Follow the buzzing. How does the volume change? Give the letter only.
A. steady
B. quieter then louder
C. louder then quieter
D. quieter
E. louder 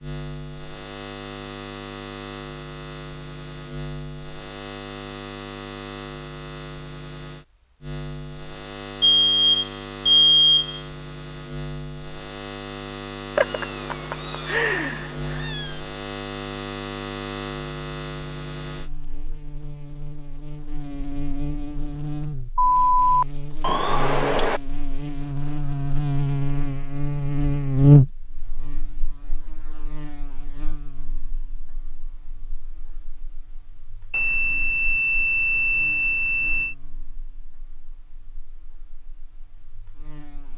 C.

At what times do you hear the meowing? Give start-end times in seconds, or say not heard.
13.3-15.8.